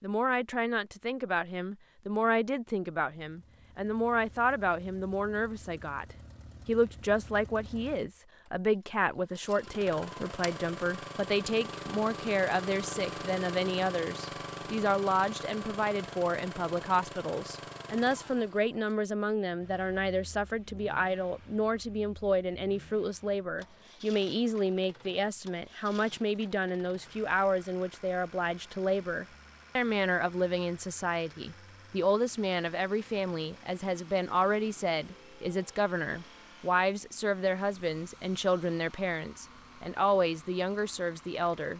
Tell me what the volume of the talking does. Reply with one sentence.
The volume of the talking stays about the same.